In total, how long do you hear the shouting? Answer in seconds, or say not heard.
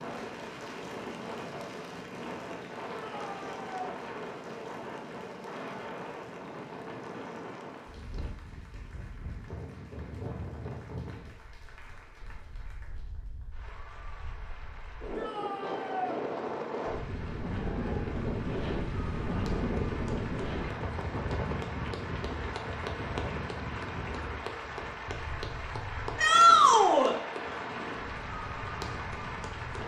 3 s.